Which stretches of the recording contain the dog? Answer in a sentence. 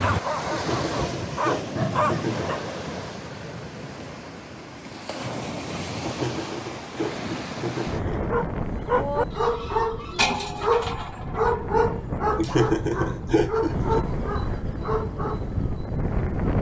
You can hear the dog from 0.0 to 2.6 s and from 8.3 to 15.4 s.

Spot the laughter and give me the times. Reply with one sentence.
The laughter can be heard from 0.5 to 2.5 s, from 6.0 to 8.3 s and from 12.3 to 14.1 s.